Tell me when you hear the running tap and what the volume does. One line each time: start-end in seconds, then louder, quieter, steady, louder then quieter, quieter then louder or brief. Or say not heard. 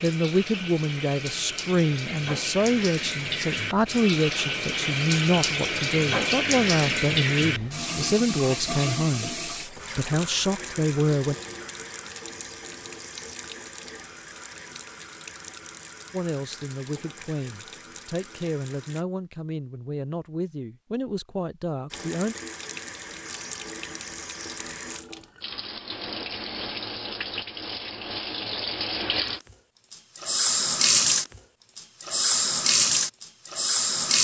0.0-19.1 louder then quieter
21.9-34.1 louder.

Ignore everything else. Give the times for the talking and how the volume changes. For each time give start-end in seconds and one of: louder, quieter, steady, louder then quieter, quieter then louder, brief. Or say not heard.
0.0-11.3 steady
16.1-22.4 steady.